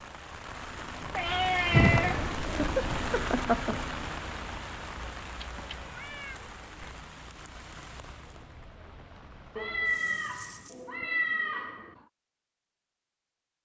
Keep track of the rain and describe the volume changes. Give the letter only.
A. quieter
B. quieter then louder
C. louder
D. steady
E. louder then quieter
A.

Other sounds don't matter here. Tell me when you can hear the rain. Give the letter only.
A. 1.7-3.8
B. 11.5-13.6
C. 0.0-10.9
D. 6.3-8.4
C.